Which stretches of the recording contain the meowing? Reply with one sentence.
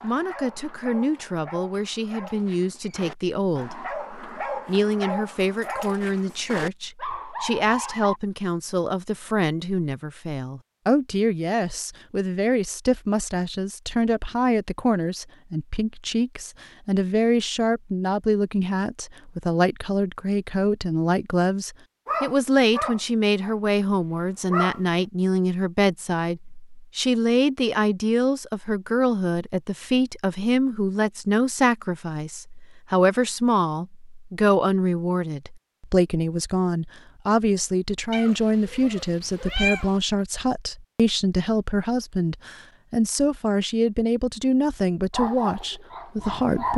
The meowing can be heard from 38.1 to 40.0 s.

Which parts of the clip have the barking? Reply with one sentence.
The barking can be heard from 0.0 to 8.2 s, from 22.1 to 24.9 s and from 45.1 to 46.7 s.